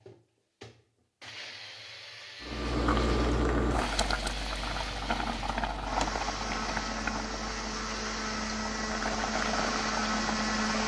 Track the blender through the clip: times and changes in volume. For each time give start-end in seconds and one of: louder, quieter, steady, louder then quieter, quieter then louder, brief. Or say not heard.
0.0-10.8 louder.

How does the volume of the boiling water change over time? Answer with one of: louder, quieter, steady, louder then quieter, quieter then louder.
quieter then louder.